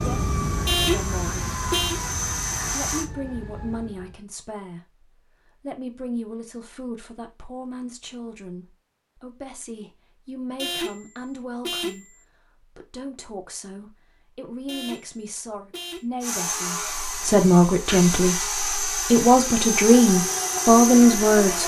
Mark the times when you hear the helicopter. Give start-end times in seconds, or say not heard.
0.0-3.0, 16.2-21.6.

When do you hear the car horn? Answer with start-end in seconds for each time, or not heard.
0.7-2.0, 10.6-12.2, 14.7-16.1.